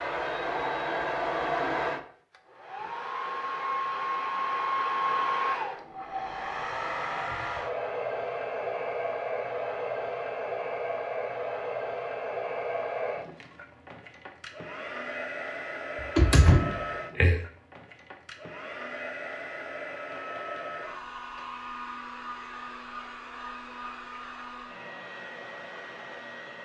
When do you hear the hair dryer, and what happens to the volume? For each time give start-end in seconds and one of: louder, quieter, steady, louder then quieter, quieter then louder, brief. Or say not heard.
0.0-26.6 quieter.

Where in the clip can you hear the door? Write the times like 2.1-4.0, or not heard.
16.1-17.4.